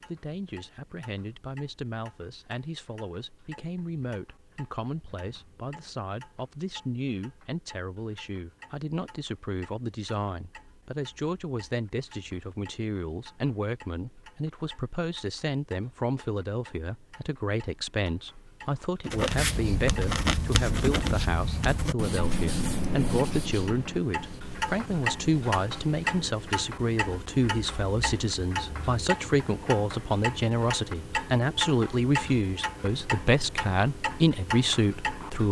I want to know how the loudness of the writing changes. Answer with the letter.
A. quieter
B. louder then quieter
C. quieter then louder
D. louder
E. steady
A.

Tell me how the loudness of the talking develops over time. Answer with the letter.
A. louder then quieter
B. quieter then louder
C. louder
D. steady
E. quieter
C.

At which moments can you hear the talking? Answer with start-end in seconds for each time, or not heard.
0.1-35.4.